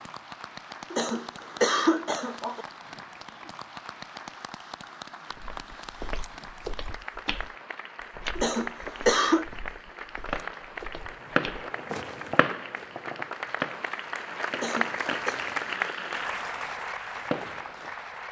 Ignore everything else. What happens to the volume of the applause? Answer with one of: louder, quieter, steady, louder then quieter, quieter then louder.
louder.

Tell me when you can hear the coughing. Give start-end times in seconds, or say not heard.
0.9-2.6, 8.3-9.4, 14.6-15.4.